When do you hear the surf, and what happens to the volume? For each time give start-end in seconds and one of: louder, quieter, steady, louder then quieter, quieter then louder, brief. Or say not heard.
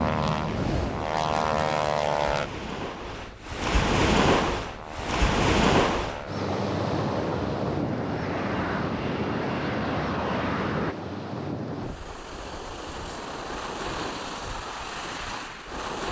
0.0-16.0 louder then quieter.